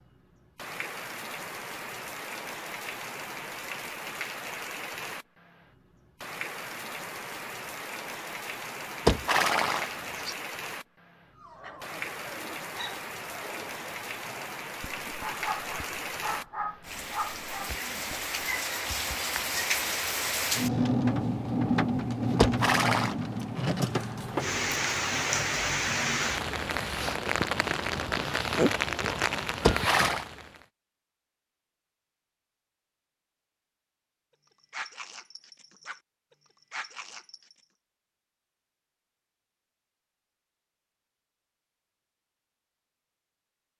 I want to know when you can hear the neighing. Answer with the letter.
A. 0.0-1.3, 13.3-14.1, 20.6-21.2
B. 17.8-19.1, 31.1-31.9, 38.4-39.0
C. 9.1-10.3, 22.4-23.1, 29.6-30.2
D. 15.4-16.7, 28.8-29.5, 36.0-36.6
C.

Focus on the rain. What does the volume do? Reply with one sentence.
The volume of the rain goes up.